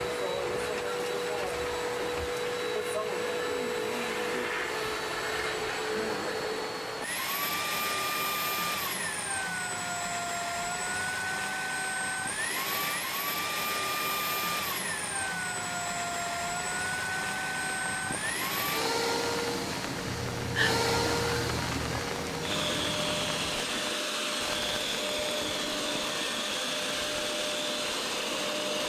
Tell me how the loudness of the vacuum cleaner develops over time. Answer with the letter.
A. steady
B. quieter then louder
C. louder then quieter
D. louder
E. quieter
A.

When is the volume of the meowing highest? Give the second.
21 s.